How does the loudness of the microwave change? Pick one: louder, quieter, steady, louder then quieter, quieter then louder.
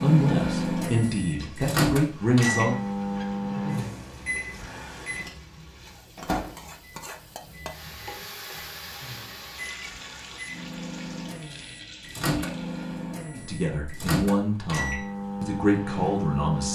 quieter then louder.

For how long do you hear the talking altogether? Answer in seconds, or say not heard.
6 s.